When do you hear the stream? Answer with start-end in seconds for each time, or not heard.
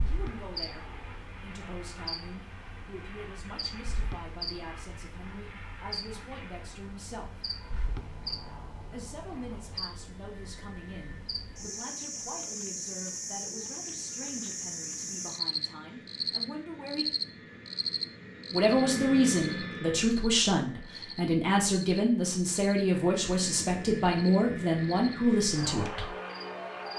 not heard.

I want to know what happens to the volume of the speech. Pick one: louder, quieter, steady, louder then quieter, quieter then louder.
louder.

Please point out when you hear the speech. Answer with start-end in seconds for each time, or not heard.
0.1-7.3, 8.9-17.1, 18.5-26.1.